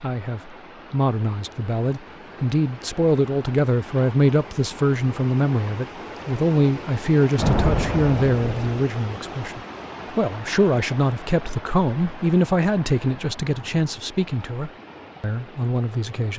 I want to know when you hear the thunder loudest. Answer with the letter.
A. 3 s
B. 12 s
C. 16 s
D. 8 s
D.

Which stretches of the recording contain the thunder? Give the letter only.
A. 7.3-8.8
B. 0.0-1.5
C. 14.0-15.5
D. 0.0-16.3
A.